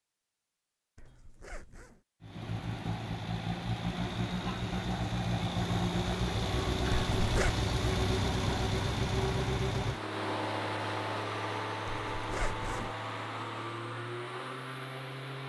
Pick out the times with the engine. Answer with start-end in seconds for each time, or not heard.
2.2-15.4.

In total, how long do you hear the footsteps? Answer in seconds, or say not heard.
not heard.